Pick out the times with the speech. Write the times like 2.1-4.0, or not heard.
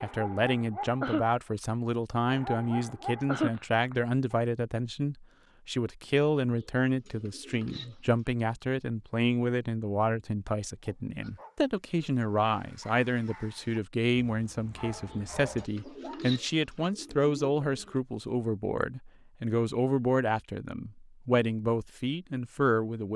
0.0-23.1.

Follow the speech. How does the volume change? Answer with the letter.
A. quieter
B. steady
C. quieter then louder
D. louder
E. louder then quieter
B.